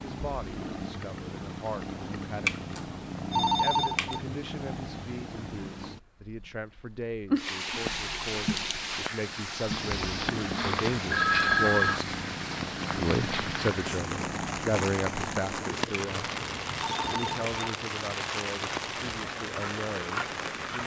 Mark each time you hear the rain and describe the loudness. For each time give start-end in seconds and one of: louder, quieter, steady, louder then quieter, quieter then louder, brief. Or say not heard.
7.4-20.8 steady.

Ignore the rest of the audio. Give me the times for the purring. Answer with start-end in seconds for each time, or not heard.
0.0-17.4.